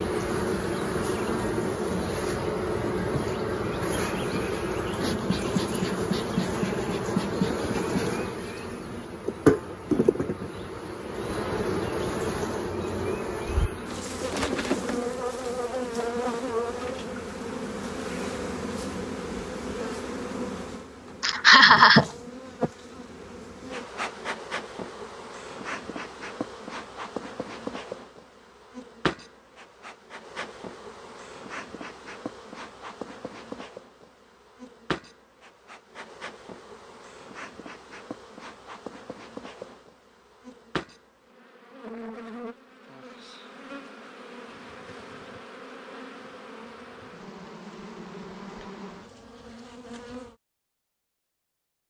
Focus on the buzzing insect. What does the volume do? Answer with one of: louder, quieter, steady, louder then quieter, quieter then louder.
quieter.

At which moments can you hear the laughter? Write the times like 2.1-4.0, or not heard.
21.2-22.1.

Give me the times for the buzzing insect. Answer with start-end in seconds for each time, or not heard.
0.0-50.4.